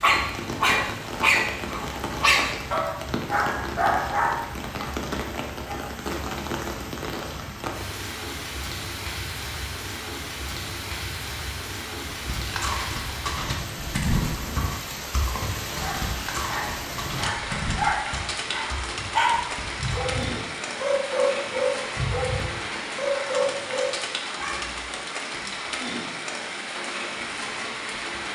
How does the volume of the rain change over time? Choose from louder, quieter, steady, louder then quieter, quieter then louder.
steady.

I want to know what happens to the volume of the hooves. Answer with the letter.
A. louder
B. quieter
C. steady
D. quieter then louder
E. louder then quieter
B.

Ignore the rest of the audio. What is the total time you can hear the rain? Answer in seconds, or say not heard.
28 s.